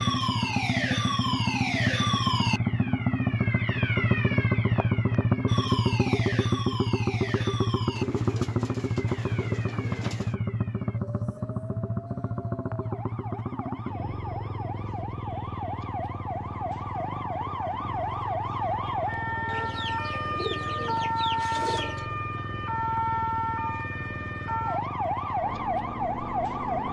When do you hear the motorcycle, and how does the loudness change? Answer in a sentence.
You can hear the motorcycle from 0.0 to 26.8 s, getting quieter.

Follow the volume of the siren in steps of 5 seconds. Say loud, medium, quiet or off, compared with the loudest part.
loud, medium, quiet, loud, loud, loud.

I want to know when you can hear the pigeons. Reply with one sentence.
The pigeons can be heard from 8.0 to 10.3 s and from 19.4 to 22.1 s.